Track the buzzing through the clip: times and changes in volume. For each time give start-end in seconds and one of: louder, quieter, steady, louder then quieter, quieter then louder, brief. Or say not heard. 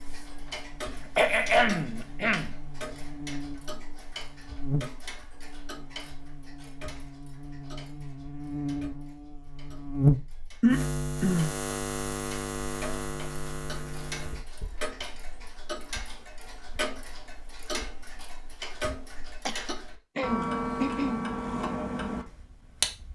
0.0-14.7 louder then quieter.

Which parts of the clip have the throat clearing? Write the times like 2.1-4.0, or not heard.
1.1-2.5, 10.6-11.6, 19.4-21.2.